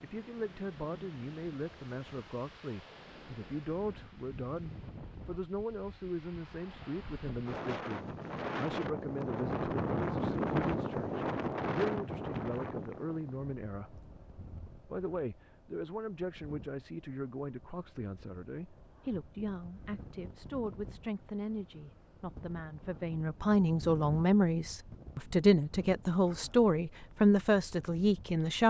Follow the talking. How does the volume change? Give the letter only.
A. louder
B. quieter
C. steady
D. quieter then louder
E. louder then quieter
A.